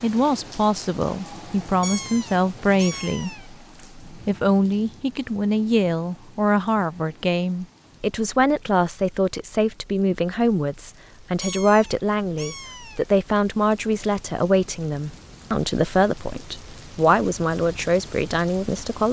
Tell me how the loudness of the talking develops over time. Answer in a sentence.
The volume of the talking stays about the same.